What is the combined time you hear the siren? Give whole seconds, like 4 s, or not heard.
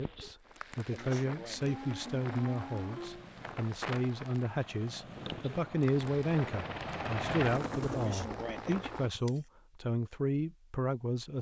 2 s.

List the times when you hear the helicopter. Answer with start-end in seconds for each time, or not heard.
1.6-9.1.